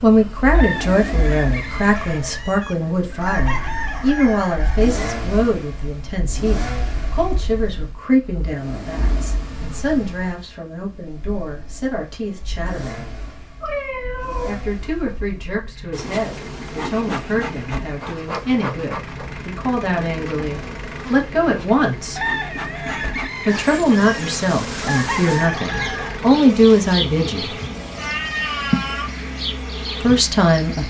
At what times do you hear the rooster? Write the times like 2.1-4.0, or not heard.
0.5-5.0, 22.1-26.2.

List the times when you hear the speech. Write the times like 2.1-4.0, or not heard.
0.0-13.1, 14.4-22.2, 23.4-27.6, 30.0-30.8.